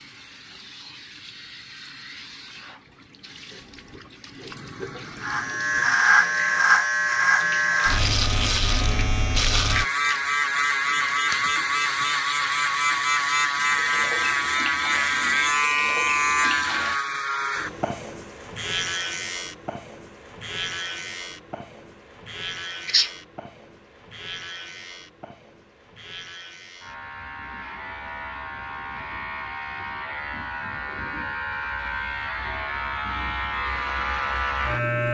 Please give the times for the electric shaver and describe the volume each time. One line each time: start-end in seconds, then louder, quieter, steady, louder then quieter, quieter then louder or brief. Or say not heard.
5.2-35.0 quieter then louder.